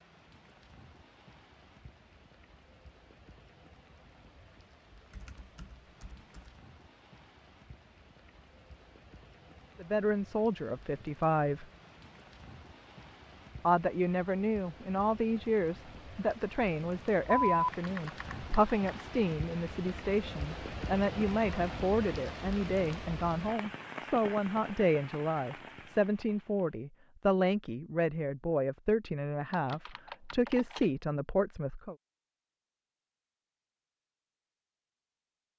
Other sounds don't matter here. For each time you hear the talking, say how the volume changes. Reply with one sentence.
You can hear the talking briefly from 9.8 to 11.7 s; and from 13.7 to 31.9 s, at a steady volume.